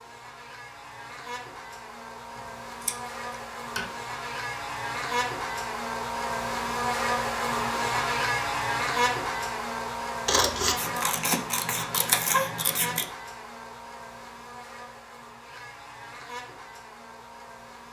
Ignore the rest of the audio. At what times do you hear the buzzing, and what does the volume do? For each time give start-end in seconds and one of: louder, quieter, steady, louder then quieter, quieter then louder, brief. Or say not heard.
0.0-17.8 louder then quieter.